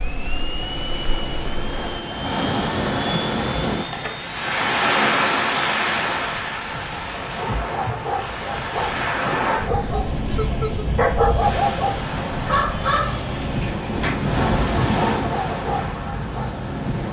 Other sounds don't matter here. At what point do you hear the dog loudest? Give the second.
11 s.